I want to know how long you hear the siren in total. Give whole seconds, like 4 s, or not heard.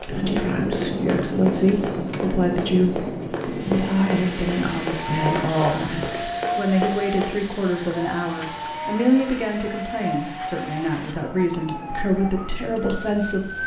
9 s.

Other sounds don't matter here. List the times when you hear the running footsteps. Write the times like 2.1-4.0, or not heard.
0.0-7.4.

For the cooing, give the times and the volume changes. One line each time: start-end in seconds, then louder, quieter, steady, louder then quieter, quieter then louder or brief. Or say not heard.
not heard.